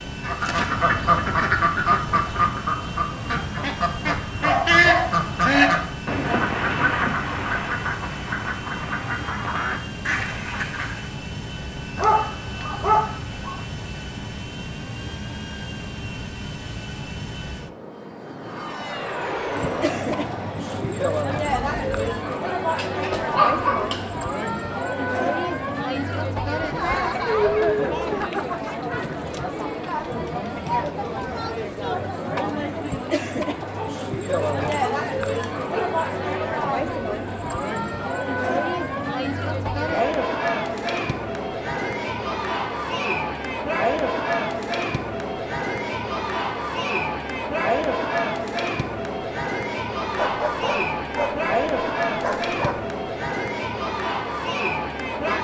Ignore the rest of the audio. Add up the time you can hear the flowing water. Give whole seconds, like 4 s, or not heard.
not heard.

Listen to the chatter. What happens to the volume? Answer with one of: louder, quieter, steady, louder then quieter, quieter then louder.
steady.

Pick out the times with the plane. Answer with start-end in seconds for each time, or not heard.
0.0-22.1.